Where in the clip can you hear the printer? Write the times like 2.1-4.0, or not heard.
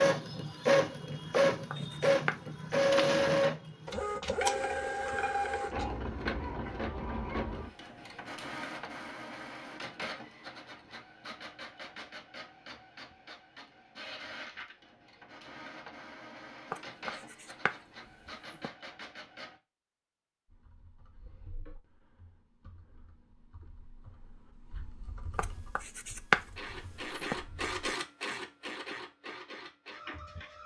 0.0-19.6, 26.6-30.6.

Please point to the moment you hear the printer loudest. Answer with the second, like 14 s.
3 s.